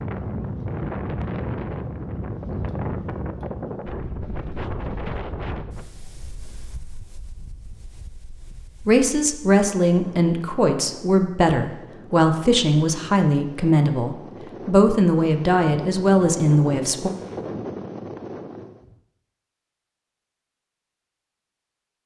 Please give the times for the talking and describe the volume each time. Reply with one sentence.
The talking can be heard from 8.8 to 17.1 s, at a steady volume.